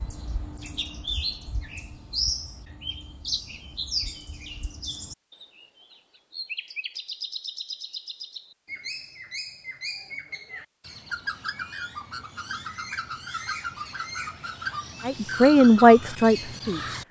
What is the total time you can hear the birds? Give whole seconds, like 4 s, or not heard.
17 s.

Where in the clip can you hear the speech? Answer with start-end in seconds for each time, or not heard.
15.1-16.9.